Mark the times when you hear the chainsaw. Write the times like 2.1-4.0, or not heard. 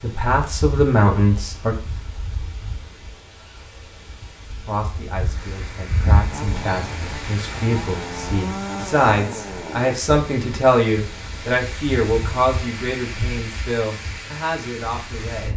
6.2-10.0.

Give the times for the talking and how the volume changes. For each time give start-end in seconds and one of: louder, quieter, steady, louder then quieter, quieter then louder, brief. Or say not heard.
0.0-1.8 brief
4.7-15.5 louder then quieter.